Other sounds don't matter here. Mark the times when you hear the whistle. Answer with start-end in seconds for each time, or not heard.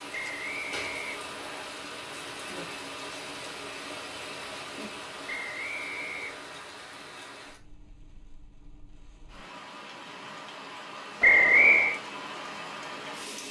0.1-1.6, 5.2-6.5, 11.2-12.0.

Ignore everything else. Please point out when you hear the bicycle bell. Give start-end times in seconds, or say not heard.
not heard.